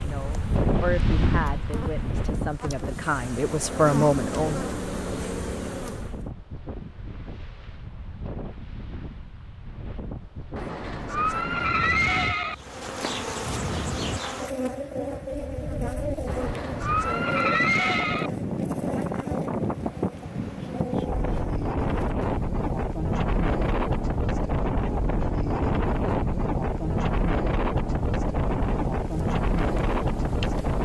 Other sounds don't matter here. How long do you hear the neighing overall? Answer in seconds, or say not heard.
4 s.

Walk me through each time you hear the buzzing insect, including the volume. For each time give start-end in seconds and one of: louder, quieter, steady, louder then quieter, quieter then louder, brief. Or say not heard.
0.0-6.2 louder
12.6-30.8 quieter.